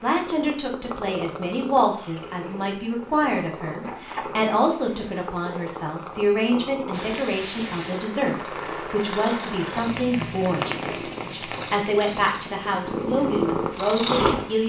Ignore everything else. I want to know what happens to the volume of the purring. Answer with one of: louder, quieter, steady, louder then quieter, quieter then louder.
louder.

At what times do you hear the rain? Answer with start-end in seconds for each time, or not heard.
6.9-14.6.